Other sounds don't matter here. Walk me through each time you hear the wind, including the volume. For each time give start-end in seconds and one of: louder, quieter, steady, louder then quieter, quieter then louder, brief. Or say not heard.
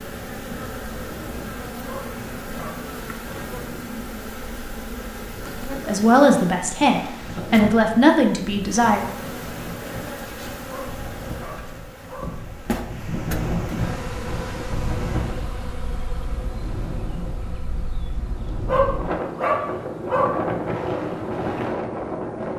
0.0-22.5 louder.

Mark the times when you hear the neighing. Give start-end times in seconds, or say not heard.
not heard.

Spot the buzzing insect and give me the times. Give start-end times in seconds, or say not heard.
0.0-22.5.